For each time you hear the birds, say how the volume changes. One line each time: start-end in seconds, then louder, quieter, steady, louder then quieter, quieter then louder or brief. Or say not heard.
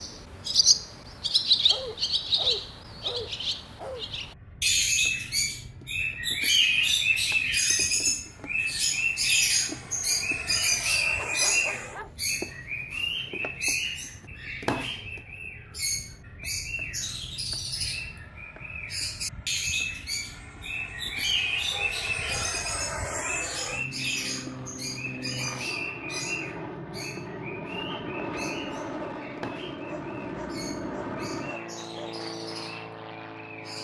0.0-33.7 quieter.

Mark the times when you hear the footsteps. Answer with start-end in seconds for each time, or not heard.
not heard.